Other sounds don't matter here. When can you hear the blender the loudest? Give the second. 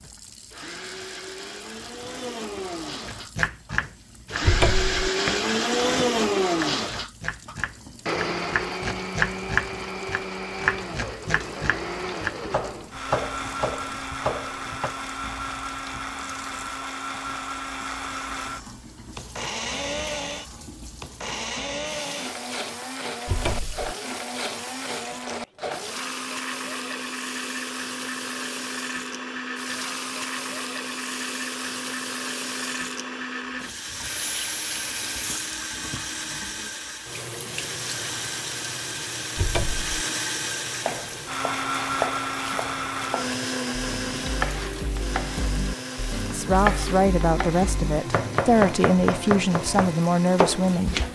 6 s.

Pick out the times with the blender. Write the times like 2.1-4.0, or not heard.
0.0-51.1.